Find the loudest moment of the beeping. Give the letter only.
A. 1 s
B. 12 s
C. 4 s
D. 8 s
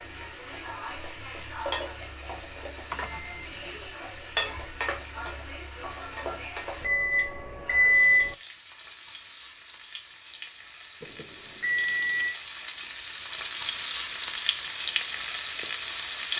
D.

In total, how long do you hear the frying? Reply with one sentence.
You can hear the frying for 16 seconds altogether.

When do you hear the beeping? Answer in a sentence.
You can hear the beeping from 2.9 to 3.5 s, from 6.8 to 8.3 s and from 11.0 to 12.3 s.